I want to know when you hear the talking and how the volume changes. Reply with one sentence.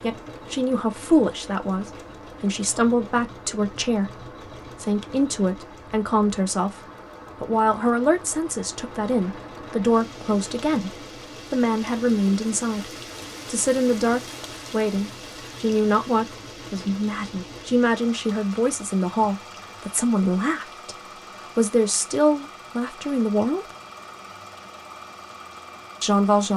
You can hear the talking from 0.0 to 23.7 s, at a steady volume; and briefly from 26.0 to 26.5 s.